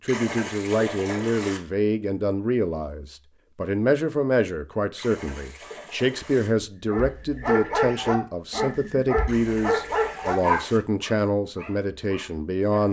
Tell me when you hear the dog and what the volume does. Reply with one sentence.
You can hear the dog from 6.9 to 12.8 s, getting quieter.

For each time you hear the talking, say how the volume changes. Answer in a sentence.
You can hear the talking from 0.0 to 12.8 s, at a steady volume.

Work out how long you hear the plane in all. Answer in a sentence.
You can't hear the plane here.